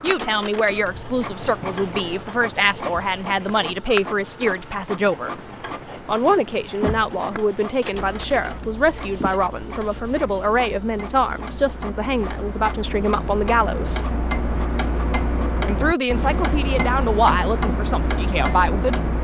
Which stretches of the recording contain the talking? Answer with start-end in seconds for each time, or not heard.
0.0-5.3, 6.0-14.1, 15.7-19.2.